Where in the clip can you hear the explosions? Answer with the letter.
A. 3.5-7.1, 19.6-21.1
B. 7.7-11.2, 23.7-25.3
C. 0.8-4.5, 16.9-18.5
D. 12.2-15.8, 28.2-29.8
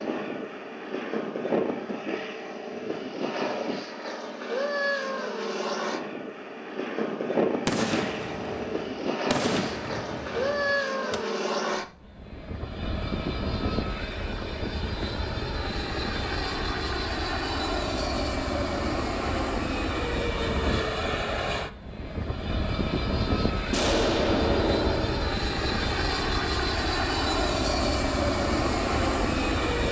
B.